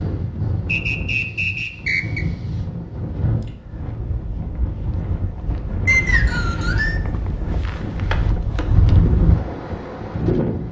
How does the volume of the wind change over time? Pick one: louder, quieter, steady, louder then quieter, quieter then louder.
louder.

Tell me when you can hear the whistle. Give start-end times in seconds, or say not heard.
0.7-2.2, 5.8-7.0.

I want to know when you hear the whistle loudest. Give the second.
6 s.